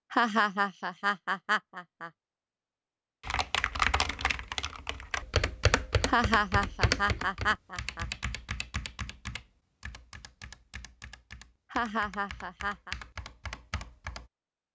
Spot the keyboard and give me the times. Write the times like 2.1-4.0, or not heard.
3.2-14.2.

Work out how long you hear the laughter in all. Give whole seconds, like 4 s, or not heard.
5 s.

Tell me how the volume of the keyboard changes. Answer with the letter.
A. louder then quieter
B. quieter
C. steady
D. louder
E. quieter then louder
E.